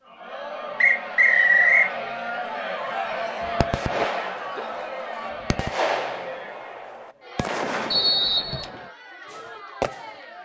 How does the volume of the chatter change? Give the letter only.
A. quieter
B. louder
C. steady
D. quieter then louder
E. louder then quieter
A.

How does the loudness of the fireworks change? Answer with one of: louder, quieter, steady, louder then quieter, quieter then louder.
quieter then louder.